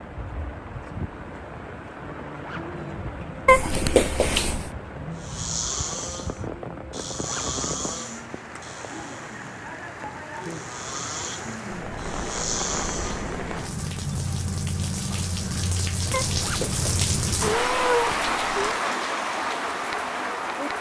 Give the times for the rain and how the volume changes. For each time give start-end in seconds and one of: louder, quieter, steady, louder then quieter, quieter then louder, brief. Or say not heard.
0.0-20.7 louder.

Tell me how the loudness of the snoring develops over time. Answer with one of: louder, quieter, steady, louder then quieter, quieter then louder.
quieter then louder.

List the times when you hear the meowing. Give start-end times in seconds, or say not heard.
3.5-4.7, 16.1-18.8.